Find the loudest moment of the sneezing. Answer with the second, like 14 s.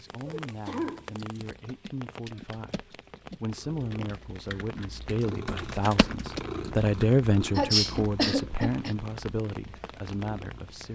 8 s.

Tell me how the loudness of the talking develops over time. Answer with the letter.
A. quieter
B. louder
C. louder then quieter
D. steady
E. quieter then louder
C.